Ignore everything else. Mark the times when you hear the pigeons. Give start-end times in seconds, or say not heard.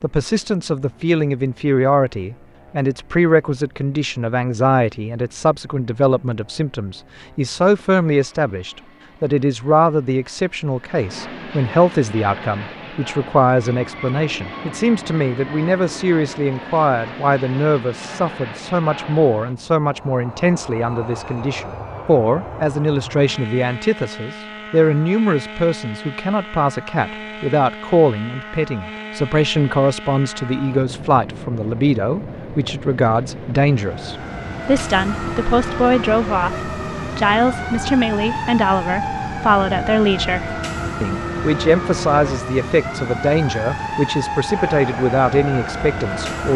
not heard.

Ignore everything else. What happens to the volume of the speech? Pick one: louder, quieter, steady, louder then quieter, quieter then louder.
steady.